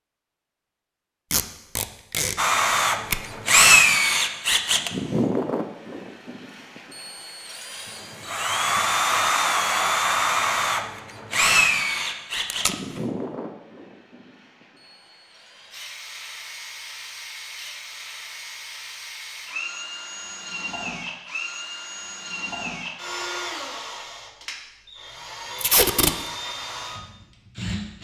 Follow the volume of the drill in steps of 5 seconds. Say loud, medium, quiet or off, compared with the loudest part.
loud, medium, medium, quiet, quiet, quiet.